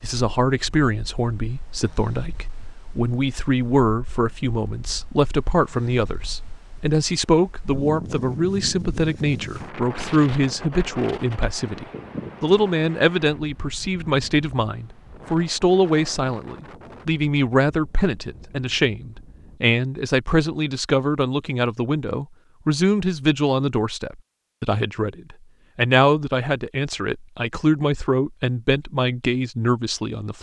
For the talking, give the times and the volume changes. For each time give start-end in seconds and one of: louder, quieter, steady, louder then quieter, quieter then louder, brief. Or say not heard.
0.0-30.3 steady.